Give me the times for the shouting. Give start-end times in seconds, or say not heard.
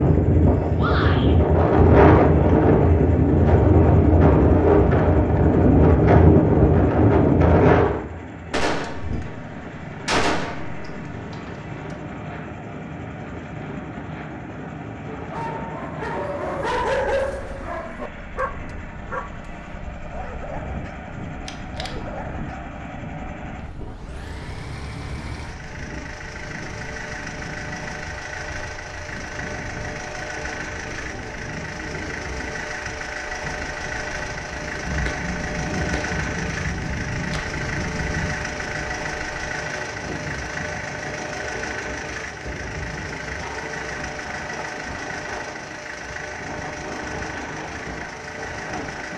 0.8-1.4.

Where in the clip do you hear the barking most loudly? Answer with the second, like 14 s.
17 s.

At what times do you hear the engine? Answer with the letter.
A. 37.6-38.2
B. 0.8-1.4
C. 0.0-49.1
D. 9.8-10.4
C.